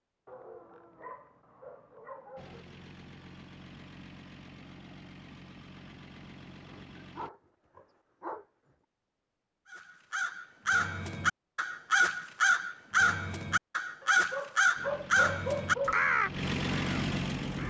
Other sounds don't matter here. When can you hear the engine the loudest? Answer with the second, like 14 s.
17 s.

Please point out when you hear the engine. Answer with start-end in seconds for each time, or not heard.
2.4-7.3, 14.8-17.6.